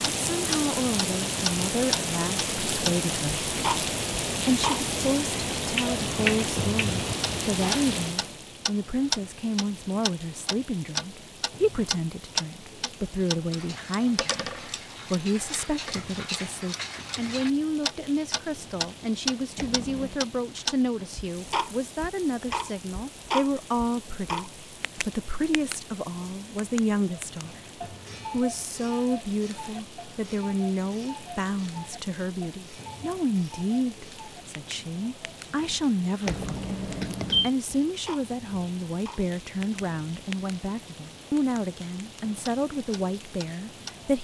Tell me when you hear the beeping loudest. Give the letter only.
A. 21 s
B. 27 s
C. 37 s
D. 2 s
C.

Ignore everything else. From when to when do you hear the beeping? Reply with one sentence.
You can hear the beeping from 19.6 to 20.2 s and from 36.2 to 37.5 s.